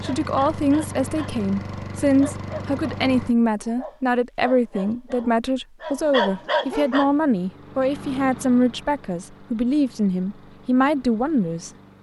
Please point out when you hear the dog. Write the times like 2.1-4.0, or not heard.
0.0-1.4, 2.1-7.1.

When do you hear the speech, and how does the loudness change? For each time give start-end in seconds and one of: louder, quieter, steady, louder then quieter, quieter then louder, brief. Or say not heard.
0.0-11.7 steady.